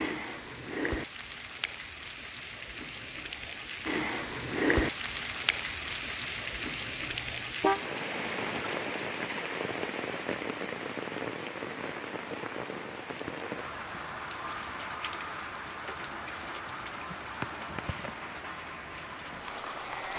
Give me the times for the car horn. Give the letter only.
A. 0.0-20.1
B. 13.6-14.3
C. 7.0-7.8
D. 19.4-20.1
C.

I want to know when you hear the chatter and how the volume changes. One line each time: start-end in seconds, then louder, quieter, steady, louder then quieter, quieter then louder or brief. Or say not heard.
not heard.